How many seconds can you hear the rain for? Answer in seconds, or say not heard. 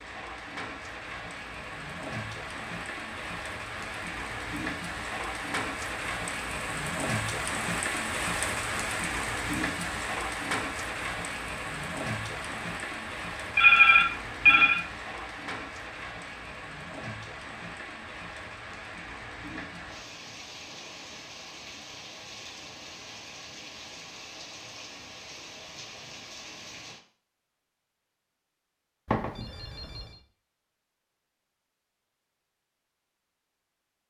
27 s.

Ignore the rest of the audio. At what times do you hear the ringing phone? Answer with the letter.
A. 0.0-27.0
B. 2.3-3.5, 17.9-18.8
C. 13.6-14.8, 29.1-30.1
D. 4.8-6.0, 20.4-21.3
C.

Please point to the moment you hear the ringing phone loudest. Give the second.
14 s.